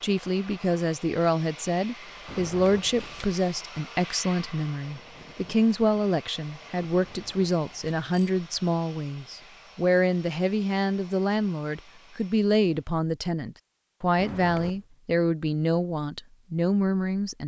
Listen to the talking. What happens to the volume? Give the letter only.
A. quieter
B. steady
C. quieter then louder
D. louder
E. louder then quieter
B.